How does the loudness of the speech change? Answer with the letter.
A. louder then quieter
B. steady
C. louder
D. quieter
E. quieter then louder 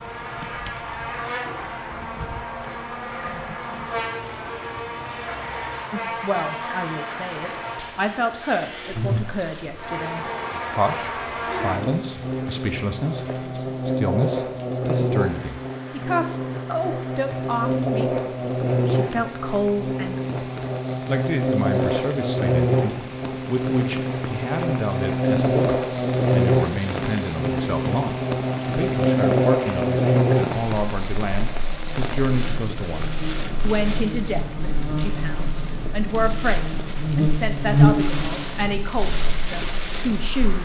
B.